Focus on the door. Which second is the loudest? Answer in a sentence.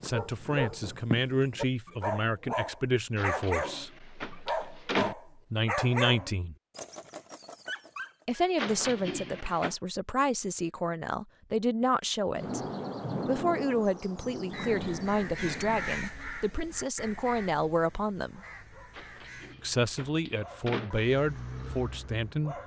The loudest moment of the door is at 5 seconds.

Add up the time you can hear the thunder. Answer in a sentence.
You can hear the thunder for 4 seconds altogether.